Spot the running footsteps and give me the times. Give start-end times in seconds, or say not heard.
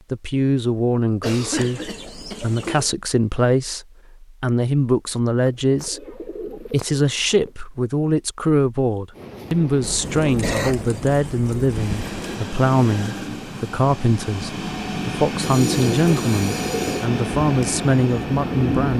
not heard.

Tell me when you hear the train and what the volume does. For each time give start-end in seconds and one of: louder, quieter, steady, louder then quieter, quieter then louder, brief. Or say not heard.
9.1-18.9 louder.